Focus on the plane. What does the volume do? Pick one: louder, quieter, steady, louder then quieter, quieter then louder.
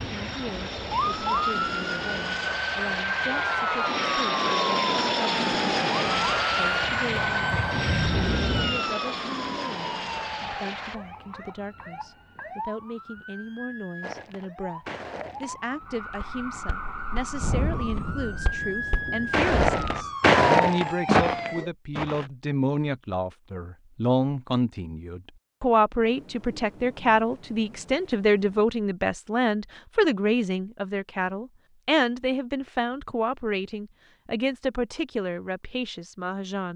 louder then quieter.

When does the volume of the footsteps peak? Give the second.
20 s.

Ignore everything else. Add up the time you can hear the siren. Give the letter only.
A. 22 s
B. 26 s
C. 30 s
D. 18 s
A.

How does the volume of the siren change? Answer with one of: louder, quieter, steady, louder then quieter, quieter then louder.
quieter then louder.